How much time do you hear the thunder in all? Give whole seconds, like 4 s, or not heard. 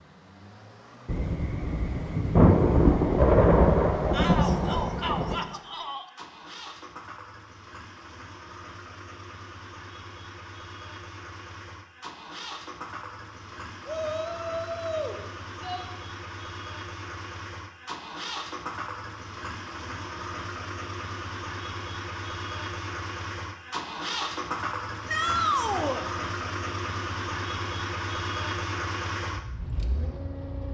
4 s.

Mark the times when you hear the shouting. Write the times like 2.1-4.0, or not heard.
4.1-6.0, 13.8-15.8, 25.1-26.1.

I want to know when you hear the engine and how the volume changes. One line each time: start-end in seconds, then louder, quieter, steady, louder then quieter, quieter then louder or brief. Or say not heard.
0.0-30.6 louder.